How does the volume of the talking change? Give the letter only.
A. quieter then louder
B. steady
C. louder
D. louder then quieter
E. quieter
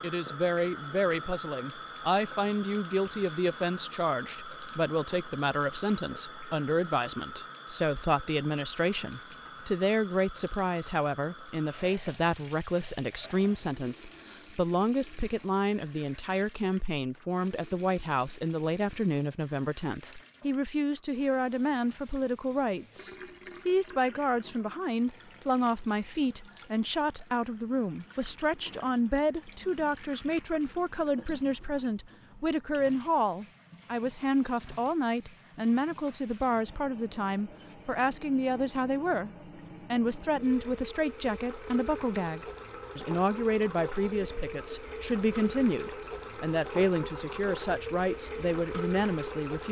B.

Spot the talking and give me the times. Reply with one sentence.
You can hear the talking from 0.0 to 49.6 s.